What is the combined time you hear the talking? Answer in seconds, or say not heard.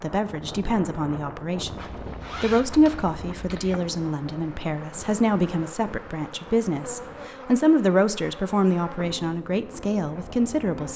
10 s.